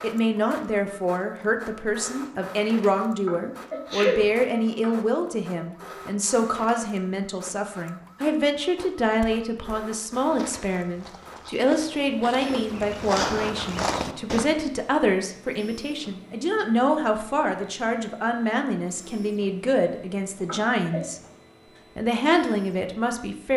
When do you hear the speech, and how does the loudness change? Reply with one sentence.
You can hear the speech from 0.0 to 21.2 s, at a steady volume; and briefly from 21.9 to 23.5 s.